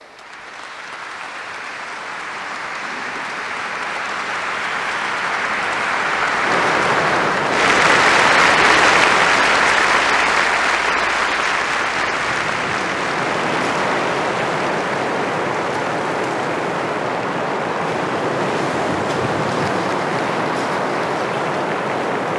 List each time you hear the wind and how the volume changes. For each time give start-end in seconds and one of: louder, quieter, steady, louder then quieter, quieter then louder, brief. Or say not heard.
6.4-22.3 quieter then louder.